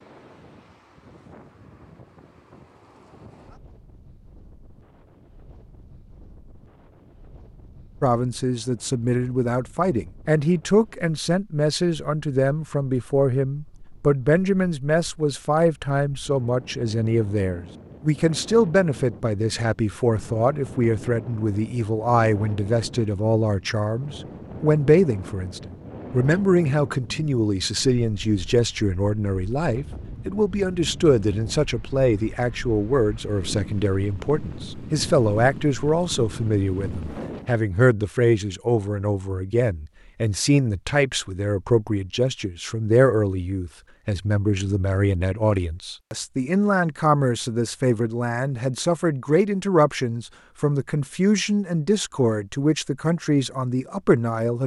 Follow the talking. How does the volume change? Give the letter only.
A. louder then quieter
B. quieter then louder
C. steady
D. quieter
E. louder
C.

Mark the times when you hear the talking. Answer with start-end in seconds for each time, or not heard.
8.0-54.6.